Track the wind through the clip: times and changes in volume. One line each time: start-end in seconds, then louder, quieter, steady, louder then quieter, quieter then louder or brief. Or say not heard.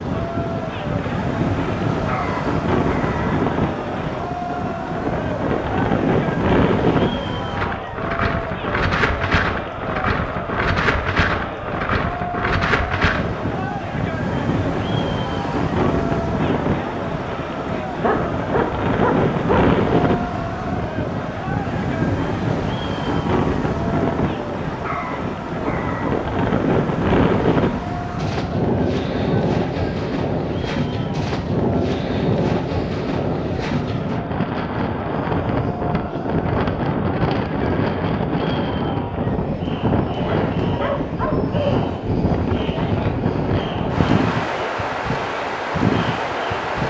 0.0-46.8 steady.